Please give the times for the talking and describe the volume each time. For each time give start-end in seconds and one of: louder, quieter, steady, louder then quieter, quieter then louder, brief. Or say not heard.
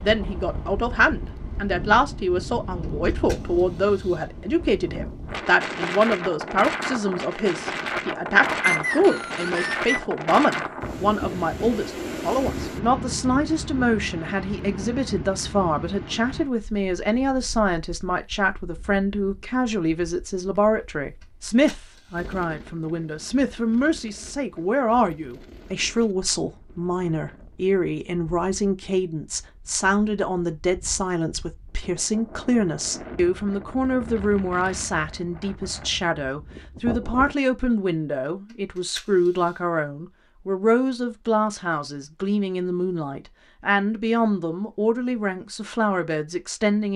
0.0-46.9 steady.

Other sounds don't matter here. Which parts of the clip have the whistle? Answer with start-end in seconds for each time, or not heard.
8.6-10.0.